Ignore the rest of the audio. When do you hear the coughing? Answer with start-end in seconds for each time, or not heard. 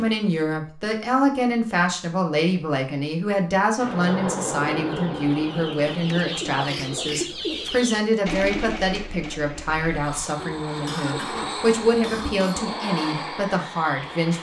10.8-12.7.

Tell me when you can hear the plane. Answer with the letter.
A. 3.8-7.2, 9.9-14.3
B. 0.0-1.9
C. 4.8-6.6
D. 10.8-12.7
A.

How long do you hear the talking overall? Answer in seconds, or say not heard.
14 s.